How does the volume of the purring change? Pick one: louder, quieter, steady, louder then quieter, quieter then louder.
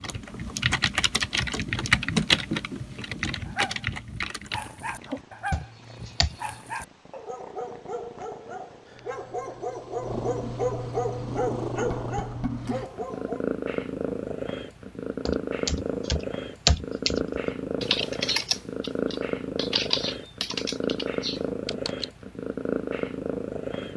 louder.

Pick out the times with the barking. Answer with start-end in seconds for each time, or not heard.
3.5-13.4.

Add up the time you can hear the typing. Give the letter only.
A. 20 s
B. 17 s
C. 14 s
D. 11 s
C.